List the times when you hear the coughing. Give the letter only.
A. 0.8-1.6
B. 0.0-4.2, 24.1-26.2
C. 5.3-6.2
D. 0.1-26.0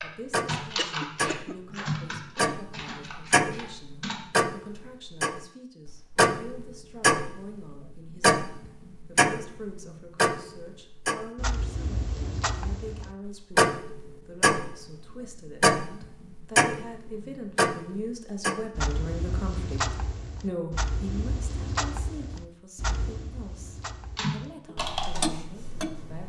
A.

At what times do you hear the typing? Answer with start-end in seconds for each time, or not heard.
0.0-4.2, 24.1-26.2.